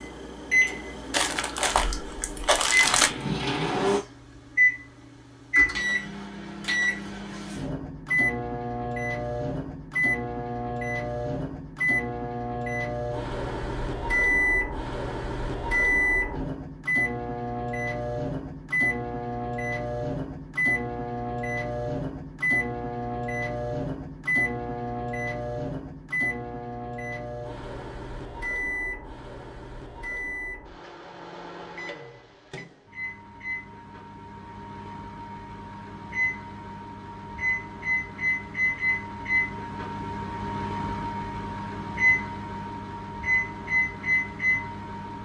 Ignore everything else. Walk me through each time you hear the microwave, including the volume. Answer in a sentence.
You can hear the microwave from 0.0 to 45.2 s, getting quieter then louder.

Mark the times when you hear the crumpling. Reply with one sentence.
You can hear the crumpling from 1.1 to 3.1 s.